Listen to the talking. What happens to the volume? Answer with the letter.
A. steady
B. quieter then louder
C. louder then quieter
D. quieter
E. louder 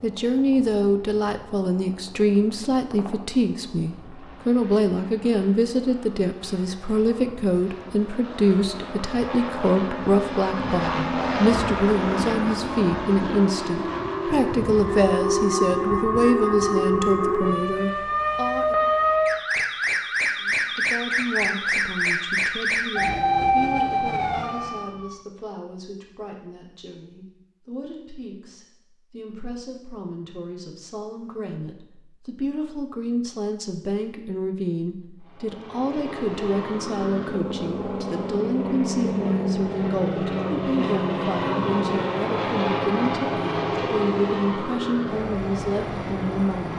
B.